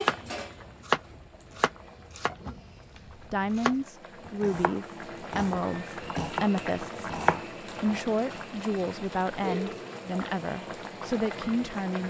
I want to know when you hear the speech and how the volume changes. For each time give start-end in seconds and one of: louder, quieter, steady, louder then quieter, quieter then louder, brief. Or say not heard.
3.1-12.0 steady.